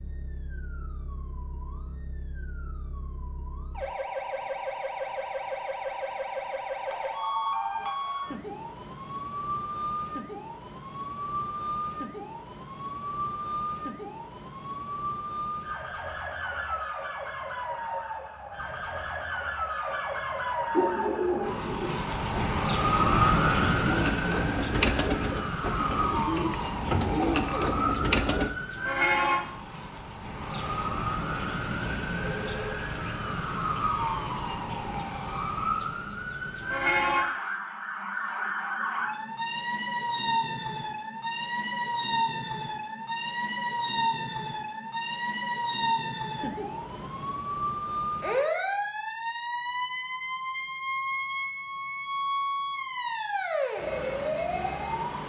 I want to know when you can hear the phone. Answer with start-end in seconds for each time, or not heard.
6.8-7.9, 32.3-32.8.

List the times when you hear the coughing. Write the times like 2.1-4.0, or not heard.
not heard.